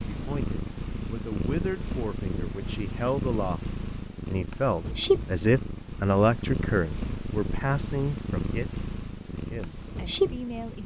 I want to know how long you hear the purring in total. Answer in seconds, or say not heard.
11 s.